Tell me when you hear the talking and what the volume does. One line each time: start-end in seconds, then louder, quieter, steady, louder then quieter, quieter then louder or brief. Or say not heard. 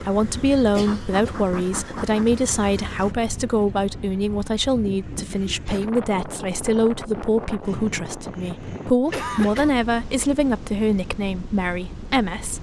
0.0-12.5 steady.